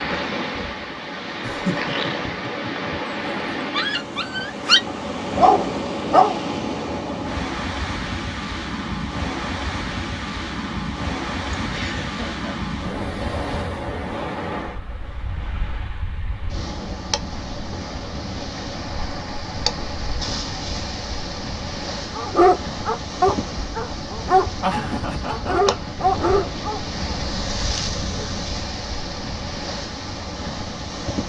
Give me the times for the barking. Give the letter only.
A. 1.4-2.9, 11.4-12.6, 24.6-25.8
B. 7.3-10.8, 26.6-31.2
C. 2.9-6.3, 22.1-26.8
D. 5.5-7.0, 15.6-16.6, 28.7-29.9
C.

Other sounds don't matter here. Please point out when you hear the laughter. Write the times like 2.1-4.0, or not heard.
1.4-2.9, 11.4-12.6, 24.6-25.8.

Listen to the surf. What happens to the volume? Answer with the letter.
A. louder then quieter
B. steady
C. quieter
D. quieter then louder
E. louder
B.